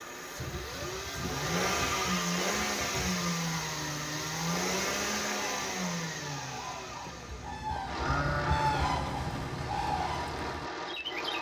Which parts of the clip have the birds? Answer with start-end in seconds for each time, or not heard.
3.3-11.3.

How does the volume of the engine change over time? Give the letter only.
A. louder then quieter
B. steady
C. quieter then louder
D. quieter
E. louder
D.